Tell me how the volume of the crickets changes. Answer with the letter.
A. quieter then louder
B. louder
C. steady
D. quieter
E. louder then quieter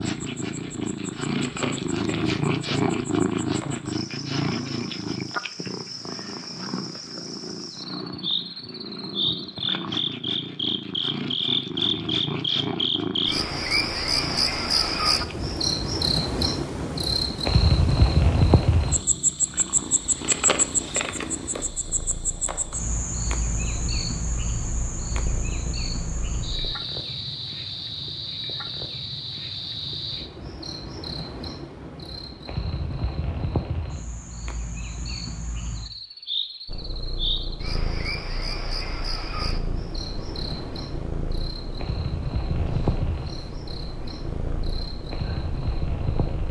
E.